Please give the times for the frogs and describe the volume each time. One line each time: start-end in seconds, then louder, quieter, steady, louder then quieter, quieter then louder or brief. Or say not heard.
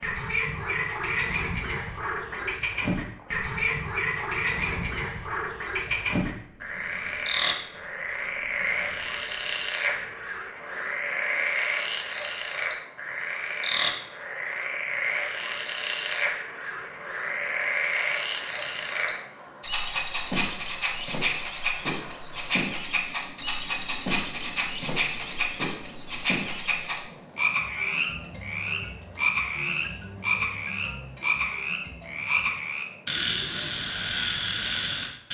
0.0-35.2 steady.